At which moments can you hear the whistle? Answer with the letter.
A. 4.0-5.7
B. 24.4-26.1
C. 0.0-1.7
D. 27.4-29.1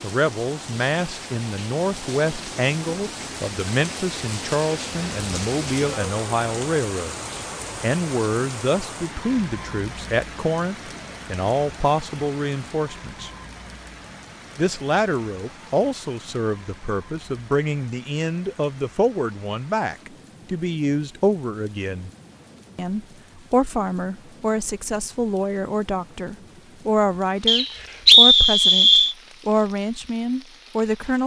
D.